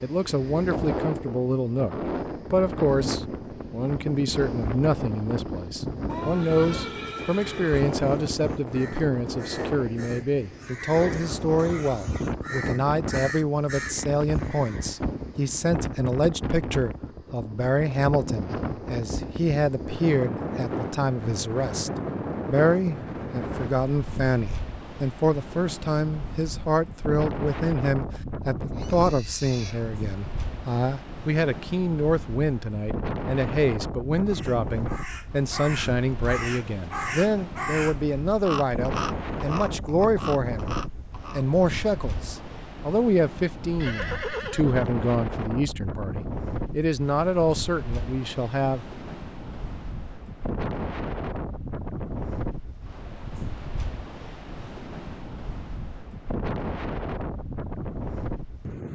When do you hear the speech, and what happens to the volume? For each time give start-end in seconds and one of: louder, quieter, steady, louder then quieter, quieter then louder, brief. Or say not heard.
0.0-48.8 steady.